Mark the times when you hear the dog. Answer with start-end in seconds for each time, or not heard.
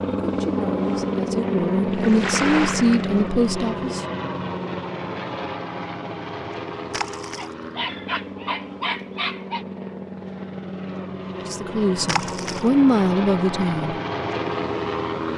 7.3-9.7.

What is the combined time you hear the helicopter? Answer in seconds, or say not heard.
15 s.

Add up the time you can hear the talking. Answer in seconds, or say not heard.
6 s.